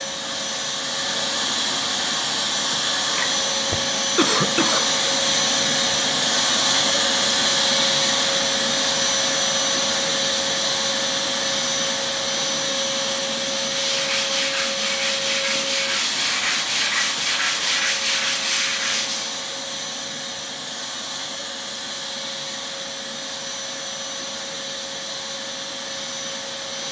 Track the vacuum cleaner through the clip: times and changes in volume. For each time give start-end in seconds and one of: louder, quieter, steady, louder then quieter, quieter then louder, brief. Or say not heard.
0.0-26.8 quieter.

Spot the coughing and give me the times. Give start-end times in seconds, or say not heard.
3.7-4.8.